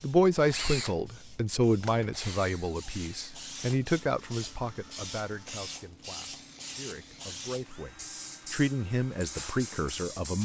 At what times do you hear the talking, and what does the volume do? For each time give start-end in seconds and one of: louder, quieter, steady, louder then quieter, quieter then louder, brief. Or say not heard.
0.0-10.4 quieter then louder.